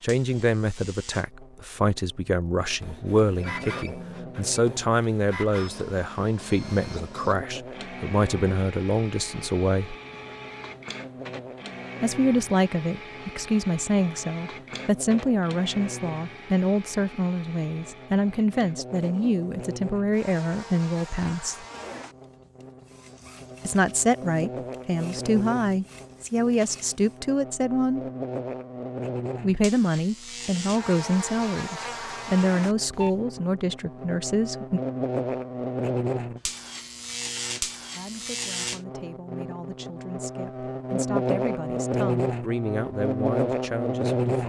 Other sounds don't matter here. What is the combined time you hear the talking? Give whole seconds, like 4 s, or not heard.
36 s.